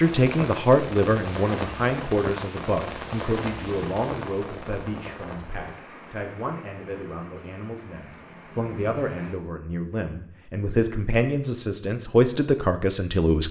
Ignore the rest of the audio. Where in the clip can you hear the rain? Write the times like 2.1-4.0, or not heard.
0.0-9.4.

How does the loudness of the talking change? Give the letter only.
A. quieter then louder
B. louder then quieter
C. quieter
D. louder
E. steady
A.